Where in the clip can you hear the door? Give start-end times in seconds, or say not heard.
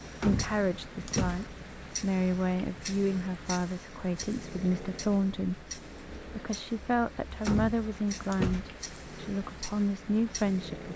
0.2-1.4, 7.5-8.8.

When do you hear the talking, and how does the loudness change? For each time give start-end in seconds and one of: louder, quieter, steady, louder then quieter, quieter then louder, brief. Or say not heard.
0.2-10.9 steady.